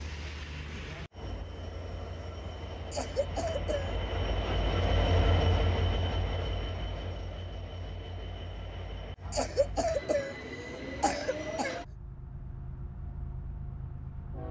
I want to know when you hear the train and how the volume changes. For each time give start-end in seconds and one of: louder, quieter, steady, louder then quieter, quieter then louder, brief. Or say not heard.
0.0-14.4 louder then quieter.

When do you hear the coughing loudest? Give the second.
10 s.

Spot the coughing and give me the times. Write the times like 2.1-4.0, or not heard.
2.9-4.0, 9.3-11.8.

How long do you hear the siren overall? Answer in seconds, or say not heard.
not heard.